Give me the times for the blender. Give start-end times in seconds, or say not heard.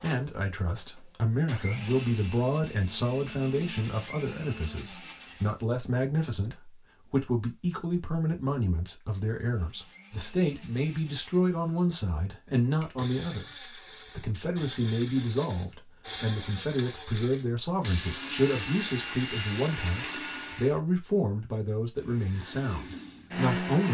0.0-5.6, 9.4-20.8, 22.0-23.8.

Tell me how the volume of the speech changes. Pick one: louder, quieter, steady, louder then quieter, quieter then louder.
steady.